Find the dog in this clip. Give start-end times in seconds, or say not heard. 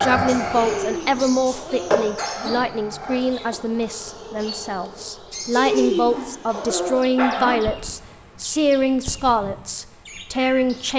0.8-2.5, 5.5-7.5.